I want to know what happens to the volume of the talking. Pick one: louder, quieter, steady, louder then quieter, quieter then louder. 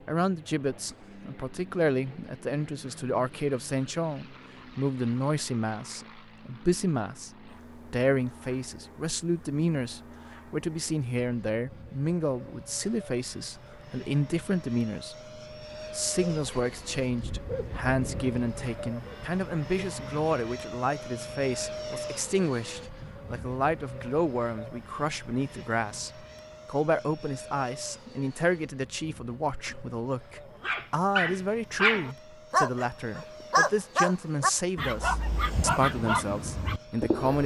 steady.